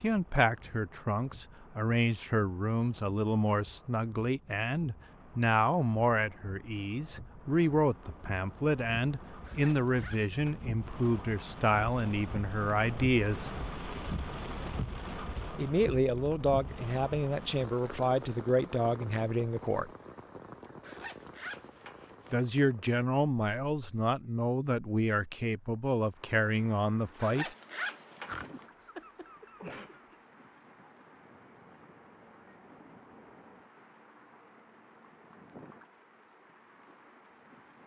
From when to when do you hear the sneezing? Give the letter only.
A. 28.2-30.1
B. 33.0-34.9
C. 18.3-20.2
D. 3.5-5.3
A.